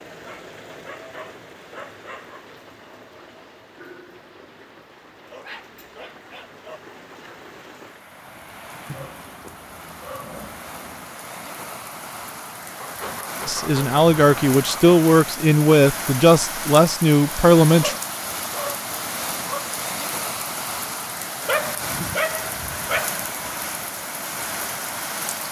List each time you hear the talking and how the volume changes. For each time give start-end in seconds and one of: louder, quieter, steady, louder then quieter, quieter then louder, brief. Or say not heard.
13.4-17.9 steady.